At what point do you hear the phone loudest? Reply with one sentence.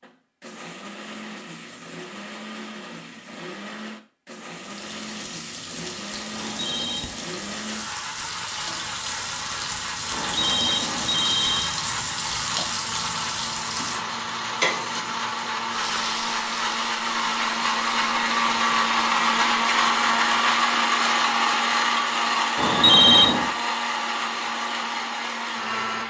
The loudest moment of the phone is at 23 seconds.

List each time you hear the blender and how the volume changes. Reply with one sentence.
You can hear the blender from 0.0 to 26.0 s, getting louder.